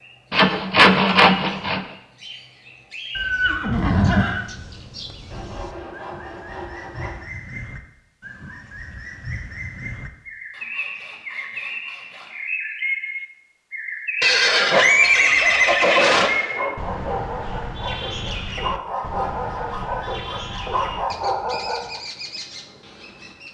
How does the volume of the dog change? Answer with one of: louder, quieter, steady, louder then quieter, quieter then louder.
louder.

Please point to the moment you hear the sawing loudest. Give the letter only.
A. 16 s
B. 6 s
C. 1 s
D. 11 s
C.